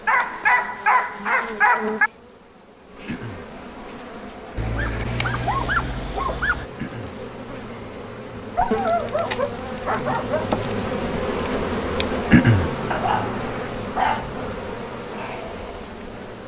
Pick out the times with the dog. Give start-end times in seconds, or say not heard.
0.1-2.1, 4.5-6.7, 8.6-10.6, 12.9-14.7.